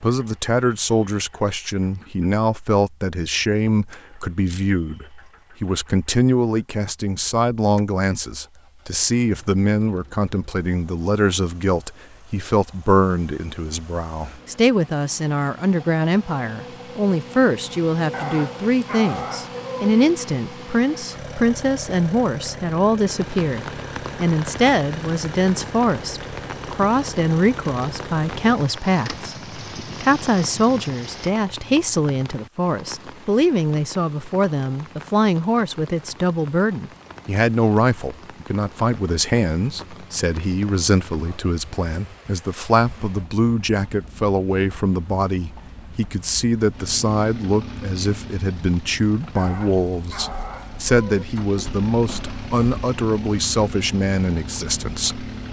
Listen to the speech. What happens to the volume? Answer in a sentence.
The volume of the speech stays about the same.